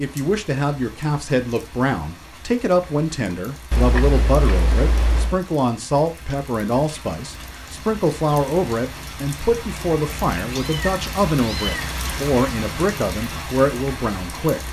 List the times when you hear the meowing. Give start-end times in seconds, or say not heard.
3.7-5.4, 10.0-11.8.